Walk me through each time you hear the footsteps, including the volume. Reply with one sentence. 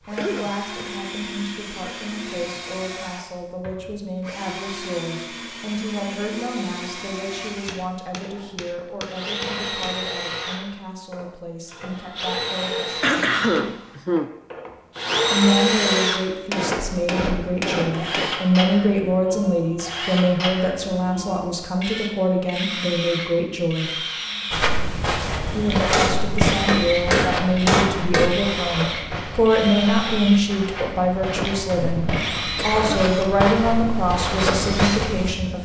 The footsteps can be heard from 24.5 to 35.4 s, getting quieter then louder.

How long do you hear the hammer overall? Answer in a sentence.
The hammer can be heard for 7 seconds in total.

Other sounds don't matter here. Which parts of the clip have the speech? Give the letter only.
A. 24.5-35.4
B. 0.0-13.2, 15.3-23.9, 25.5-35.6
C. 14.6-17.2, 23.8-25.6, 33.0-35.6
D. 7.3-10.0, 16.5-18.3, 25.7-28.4
B.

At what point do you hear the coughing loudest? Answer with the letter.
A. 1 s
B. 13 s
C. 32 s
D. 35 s
B.